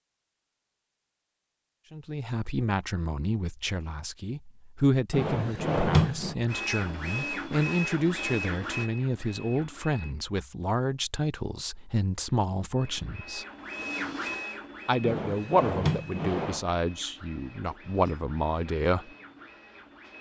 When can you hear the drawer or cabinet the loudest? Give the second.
6 s.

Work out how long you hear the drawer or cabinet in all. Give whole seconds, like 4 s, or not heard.
3 s.